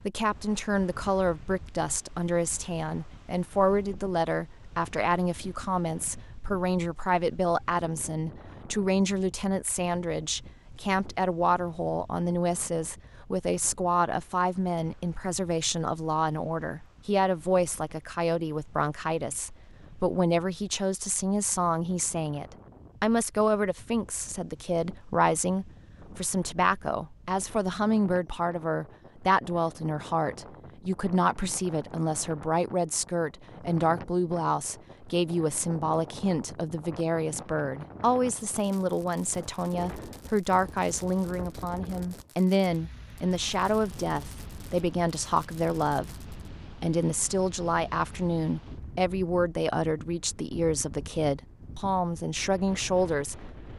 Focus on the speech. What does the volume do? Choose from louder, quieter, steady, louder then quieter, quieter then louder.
steady.